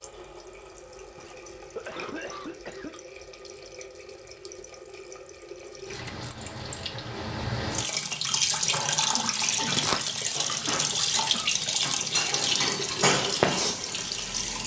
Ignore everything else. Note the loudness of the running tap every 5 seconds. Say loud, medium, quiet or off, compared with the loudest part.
quiet, loud, loud.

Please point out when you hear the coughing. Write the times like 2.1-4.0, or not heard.
1.1-3.0, 10.7-11.7.